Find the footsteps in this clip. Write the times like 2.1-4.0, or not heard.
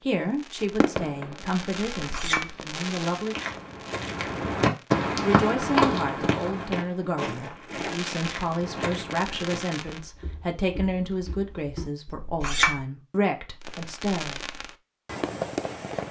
3.1-12.2.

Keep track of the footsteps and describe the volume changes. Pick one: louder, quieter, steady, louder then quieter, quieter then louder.
quieter.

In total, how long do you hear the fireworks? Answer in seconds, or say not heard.
10 s.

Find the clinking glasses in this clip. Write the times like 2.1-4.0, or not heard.
1.9-2.5, 12.1-12.8.